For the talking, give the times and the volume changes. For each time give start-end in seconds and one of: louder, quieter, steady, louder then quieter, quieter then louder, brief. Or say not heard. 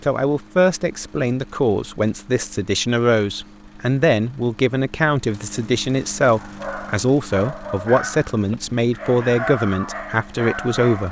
0.0-11.0 steady.